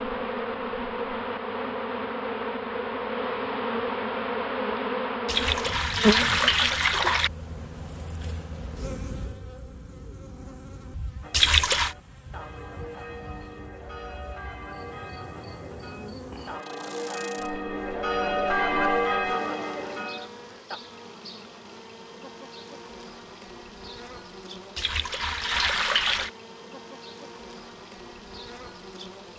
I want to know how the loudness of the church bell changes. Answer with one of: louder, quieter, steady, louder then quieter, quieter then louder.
louder.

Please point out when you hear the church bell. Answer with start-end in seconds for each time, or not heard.
11.2-20.8.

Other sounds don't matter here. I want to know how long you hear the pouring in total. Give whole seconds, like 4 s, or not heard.
4 s.